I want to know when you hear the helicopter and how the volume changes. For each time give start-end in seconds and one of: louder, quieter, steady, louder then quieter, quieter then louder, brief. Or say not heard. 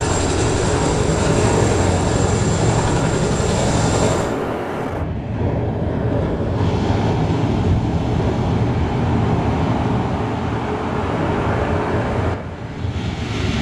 0.0-4.3 steady.